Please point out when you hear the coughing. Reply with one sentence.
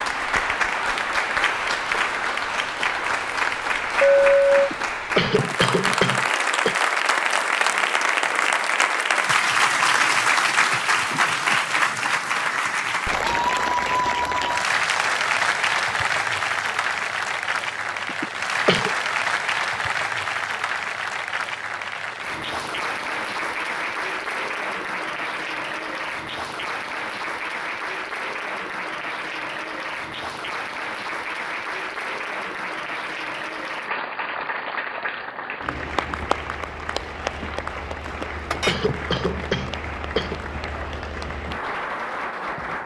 The coughing can be heard from 4.5 to 6.8 s, from 18.1 to 18.9 s and from 38.0 to 40.4 s.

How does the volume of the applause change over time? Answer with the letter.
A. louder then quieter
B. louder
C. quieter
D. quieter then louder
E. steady
C.